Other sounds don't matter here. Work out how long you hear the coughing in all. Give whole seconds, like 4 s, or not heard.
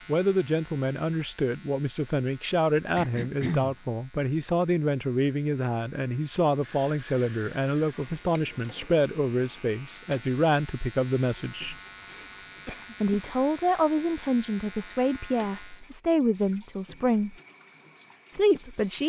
3 s.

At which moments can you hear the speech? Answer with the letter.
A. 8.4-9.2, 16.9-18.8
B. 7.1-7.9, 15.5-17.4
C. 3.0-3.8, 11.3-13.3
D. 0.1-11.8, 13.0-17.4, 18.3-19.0
D.